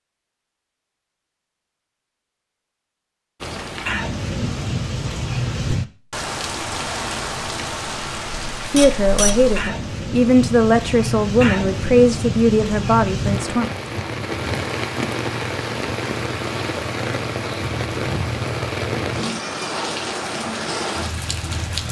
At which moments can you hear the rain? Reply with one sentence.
The rain can be heard from 3.4 to 21.8 s.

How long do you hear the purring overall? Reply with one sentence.
The purring can't be heard in this clip.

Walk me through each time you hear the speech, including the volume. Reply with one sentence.
You can hear the speech from 8.6 to 13.7 s, at a steady volume.